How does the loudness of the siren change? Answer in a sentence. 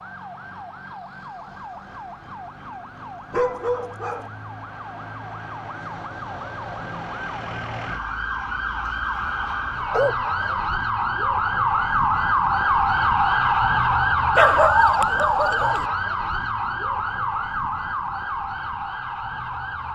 The volume of the siren goes up, then down.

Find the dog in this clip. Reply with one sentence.
You can hear the dog from 3.3 to 4.3 s, from 9.3 to 10.7 s and from 14.3 to 15.8 s.